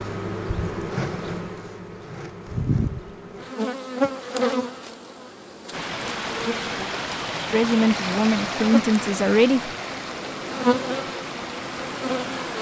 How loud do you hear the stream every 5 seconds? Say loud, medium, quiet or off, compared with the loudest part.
off, loud, medium.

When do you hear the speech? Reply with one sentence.
You can hear the speech from 7.5 to 9.7 s.